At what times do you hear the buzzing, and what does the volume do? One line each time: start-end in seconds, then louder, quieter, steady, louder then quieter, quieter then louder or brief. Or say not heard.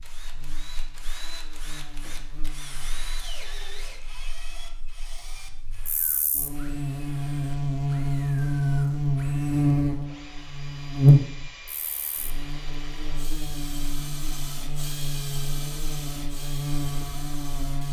0.0-17.8 louder then quieter.